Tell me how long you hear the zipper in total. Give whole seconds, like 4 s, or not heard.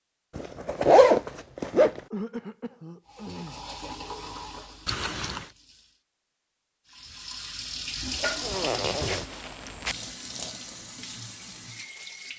4 s.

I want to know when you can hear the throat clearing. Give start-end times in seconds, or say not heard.
2.1-3.7.